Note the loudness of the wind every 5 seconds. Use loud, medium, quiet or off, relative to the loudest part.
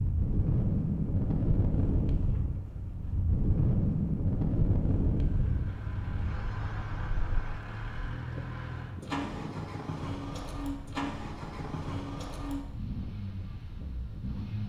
loud, medium, quiet.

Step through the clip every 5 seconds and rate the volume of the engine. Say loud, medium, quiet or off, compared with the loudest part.
off, loud, loud.